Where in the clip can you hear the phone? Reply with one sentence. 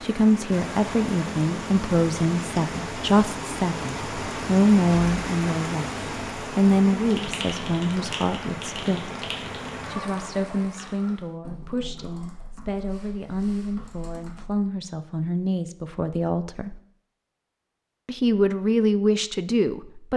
You can't hear the phone here.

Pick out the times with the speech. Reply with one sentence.
You can hear the speech from 0.0 to 9.1 s, from 9.9 to 16.8 s and from 18.1 to 20.1 s.